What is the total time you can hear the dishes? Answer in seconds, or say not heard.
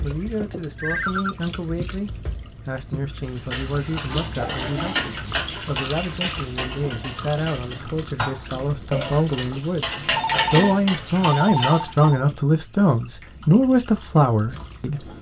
9 s.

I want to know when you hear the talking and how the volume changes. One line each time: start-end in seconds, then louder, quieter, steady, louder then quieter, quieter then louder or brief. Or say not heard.
0.0-15.1 louder.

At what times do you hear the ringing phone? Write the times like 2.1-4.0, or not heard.
0.8-1.4, 10.2-12.2.